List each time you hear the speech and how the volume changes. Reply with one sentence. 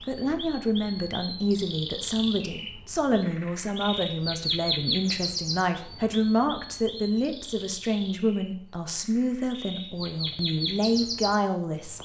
The speech can be heard from 0.0 to 12.0 s, at a steady volume.